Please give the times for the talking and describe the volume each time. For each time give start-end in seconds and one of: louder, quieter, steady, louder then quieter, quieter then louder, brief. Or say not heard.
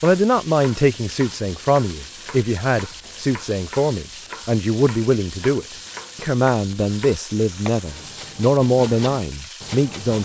0.0-10.2 steady.